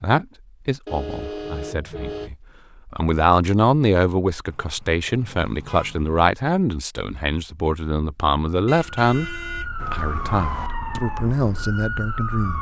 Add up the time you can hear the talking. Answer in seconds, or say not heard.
12 s.